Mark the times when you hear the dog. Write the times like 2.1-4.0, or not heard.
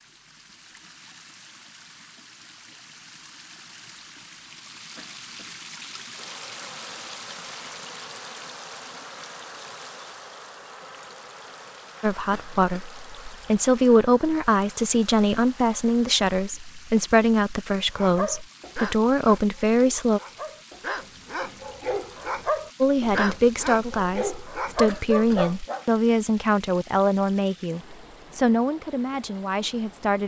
17.9-25.9.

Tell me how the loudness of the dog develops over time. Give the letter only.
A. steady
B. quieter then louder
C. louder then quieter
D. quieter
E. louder
E.